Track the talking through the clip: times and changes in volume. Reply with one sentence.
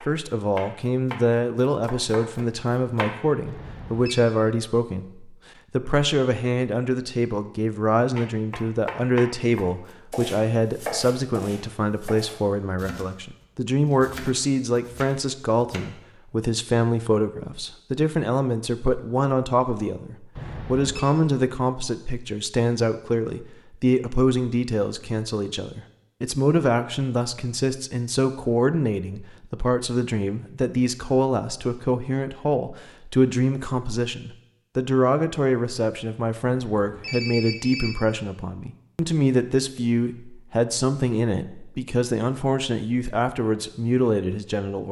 The talking can be heard from 0.1 to 44.8 s, at a steady volume.